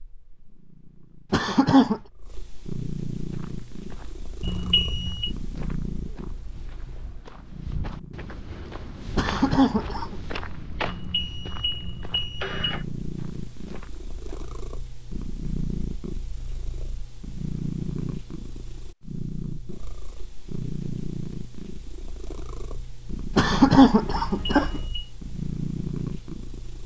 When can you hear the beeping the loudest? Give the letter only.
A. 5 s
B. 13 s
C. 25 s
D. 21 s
A.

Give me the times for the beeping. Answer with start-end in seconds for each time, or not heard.
4.4-5.3, 10.8-12.8, 24.2-25.1.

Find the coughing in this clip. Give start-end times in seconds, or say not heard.
1.3-2.0, 9.2-10.2, 23.4-24.8.